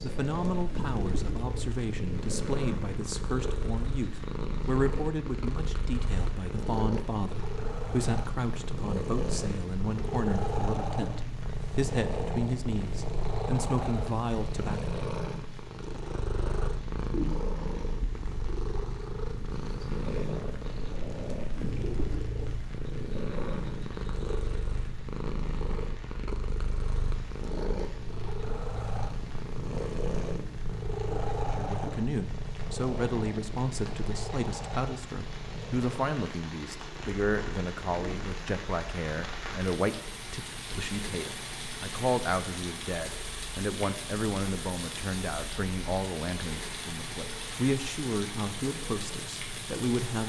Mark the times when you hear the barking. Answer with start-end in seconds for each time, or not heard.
not heard.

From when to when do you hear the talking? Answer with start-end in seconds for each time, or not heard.
0.0-14.9, 31.6-50.2.